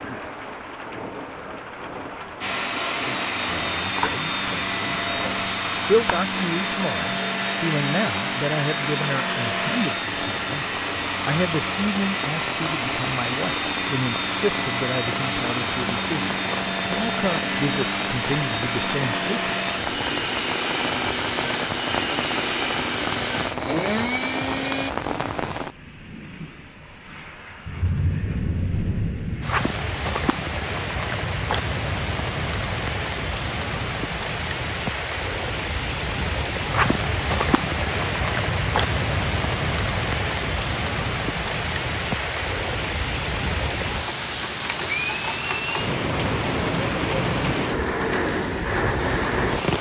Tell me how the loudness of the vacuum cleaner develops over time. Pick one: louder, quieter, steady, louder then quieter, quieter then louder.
steady.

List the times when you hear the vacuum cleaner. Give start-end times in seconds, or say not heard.
2.4-24.9.